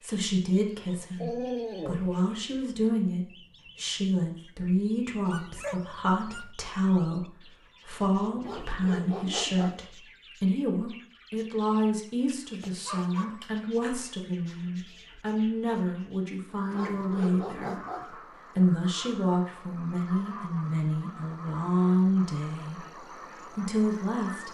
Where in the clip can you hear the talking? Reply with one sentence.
The talking can be heard from 0.0 to 17.8 s, from 18.6 to 22.9 s and from 23.6 to 24.4 s.